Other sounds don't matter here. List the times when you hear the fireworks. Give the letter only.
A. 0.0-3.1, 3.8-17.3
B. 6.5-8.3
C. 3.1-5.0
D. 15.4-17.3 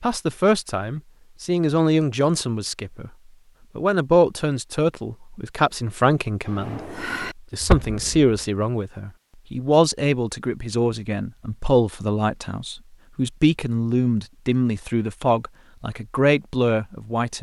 B.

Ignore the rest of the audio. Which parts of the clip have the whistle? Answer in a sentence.
The whistle can't be heard in this clip.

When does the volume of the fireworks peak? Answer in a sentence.
The volume of the fireworks peaks at 8 seconds.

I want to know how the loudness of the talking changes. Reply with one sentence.
The volume of the talking stays about the same.